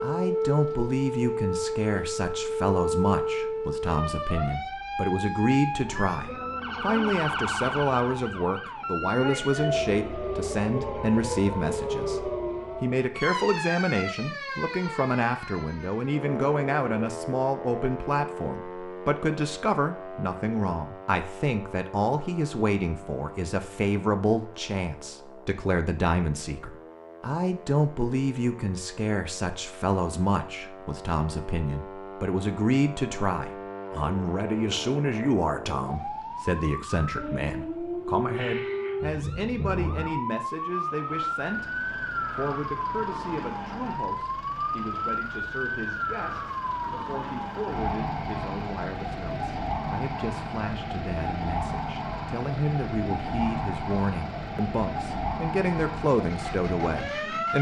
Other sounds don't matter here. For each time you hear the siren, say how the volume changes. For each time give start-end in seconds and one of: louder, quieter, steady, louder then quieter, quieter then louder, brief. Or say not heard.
0.0-57.5 quieter then louder.